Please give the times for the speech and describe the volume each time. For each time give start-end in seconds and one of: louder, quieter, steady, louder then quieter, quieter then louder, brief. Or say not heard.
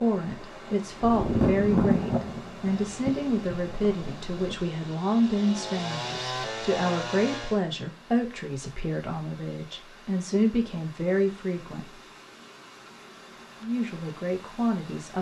0.0-12.0 steady
13.6-15.1 brief.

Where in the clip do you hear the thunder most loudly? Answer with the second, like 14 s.
2 s.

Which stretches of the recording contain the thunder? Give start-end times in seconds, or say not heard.
1.0-4.5.